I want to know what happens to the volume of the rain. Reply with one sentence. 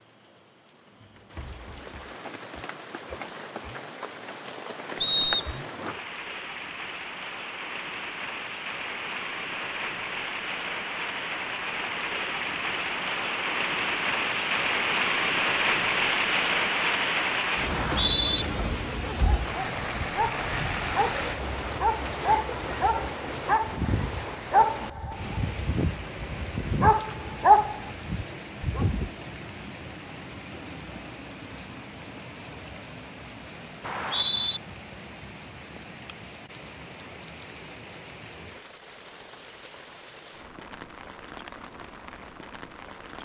The loudness of the rain goes up, then down.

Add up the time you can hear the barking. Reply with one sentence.
You can hear the barking for 10 seconds altogether.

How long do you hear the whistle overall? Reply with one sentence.
The whistle can be heard for 2 seconds in total.